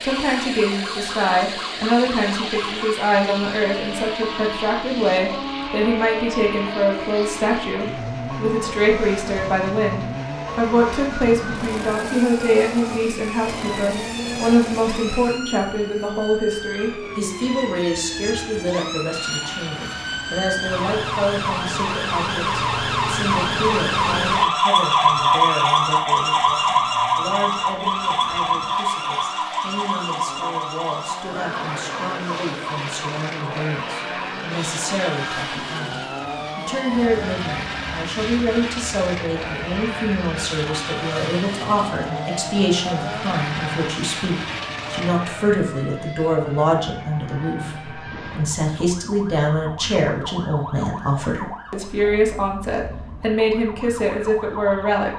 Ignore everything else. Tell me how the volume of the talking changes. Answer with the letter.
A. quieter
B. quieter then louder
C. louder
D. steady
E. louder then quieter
B.